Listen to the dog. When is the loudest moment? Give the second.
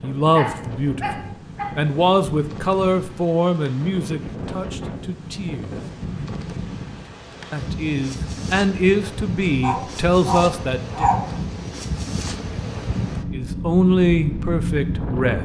11 s.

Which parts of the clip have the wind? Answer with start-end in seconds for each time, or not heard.
0.0-15.4.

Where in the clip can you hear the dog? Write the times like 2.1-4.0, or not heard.
0.3-1.9, 9.6-11.3.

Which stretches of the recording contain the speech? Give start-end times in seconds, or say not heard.
0.0-5.8, 7.5-11.1, 13.3-15.4.